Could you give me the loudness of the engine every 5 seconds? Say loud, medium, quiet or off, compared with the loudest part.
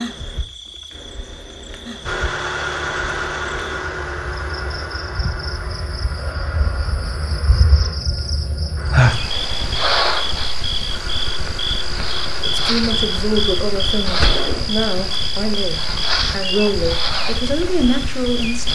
loud, medium, medium, off.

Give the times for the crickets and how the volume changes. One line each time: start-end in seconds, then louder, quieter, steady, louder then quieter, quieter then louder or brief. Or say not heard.
0.0-18.6 louder.